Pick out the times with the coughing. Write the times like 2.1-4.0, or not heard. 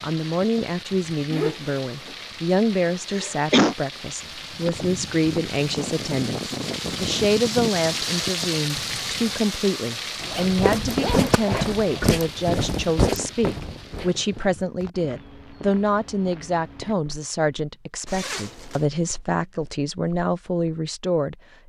3.1-3.8, 11.2-12.2.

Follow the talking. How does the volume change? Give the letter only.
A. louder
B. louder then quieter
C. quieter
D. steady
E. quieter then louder
D.